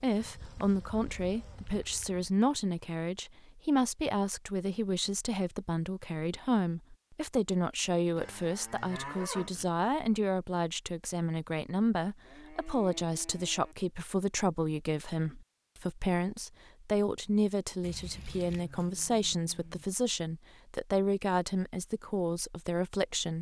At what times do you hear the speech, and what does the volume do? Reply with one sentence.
The speech can be heard from 0.0 to 23.3 s, at a steady volume.